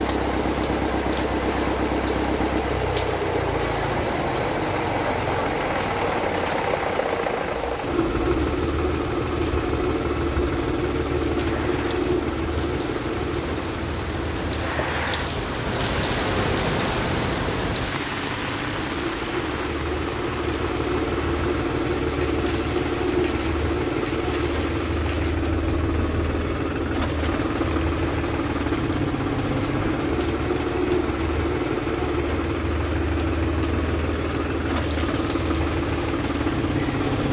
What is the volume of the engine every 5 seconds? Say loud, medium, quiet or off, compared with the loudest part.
loud, loud, loud, medium, loud, loud, loud, loud.